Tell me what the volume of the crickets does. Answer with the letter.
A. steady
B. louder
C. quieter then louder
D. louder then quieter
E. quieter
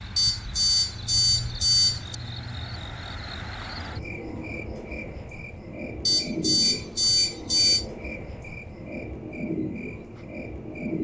A.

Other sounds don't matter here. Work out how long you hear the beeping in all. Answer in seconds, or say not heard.
4 s.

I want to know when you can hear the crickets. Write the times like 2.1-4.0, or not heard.
0.0-10.9.